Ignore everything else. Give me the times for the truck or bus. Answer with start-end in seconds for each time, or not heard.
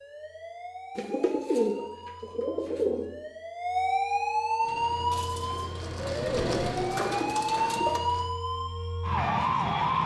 4.6-8.3.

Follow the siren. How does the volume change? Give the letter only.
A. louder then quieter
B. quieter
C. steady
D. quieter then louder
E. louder
E.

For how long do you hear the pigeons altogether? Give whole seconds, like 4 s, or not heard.
5 s.